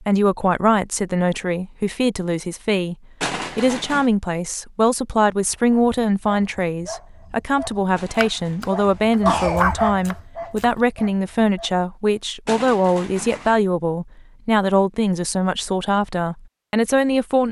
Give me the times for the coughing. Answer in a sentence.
You can hear the coughing from 3.2 to 4.1 s, from 8.0 to 9.7 s and from 12.4 to 13.7 s.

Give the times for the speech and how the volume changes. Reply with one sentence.
The speech can be heard briefly from 0.0 to 3.0 s; and from 3.5 to 17.4 s, at a steady volume.